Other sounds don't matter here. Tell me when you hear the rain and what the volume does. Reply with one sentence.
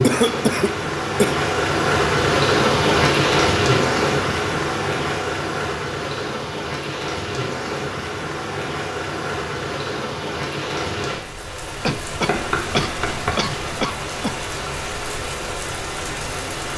You can hear the rain from 0.0 to 16.7 s, getting quieter.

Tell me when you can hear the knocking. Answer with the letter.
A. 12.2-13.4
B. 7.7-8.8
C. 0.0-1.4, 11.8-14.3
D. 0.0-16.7
A.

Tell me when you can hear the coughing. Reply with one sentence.
The coughing can be heard from 0.0 to 1.4 s and from 11.8 to 14.3 s.